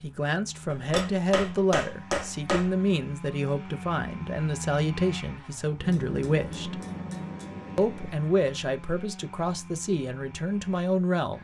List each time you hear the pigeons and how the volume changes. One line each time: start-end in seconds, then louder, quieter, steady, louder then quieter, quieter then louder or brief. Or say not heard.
not heard.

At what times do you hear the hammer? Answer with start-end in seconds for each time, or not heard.
0.7-2.8, 5.8-8.2.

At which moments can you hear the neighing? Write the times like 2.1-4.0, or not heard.
not heard.